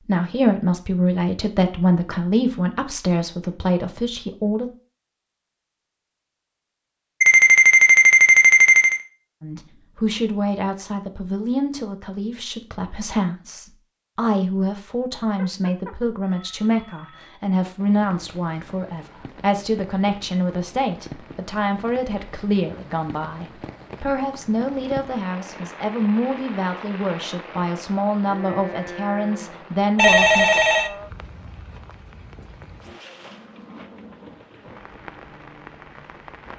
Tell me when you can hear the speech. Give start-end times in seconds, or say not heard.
0.1-4.7, 9.4-30.6.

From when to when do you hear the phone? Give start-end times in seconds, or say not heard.
7.2-9.0, 15.3-17.4, 29.9-30.9.